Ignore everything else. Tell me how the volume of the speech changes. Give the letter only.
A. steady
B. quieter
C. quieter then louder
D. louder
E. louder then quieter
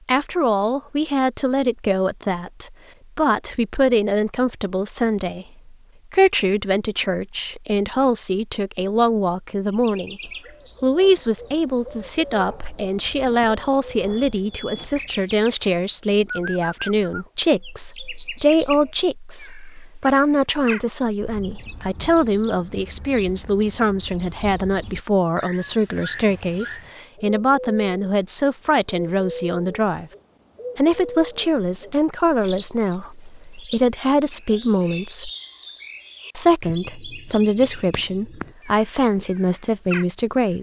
A.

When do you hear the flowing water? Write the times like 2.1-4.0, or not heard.
not heard.